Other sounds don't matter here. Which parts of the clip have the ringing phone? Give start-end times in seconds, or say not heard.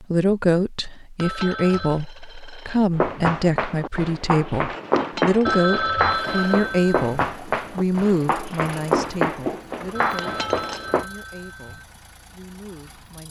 1.2-2.0, 5.5-7.2, 9.9-11.8.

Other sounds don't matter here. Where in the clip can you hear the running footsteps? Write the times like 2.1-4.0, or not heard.
3.0-11.1.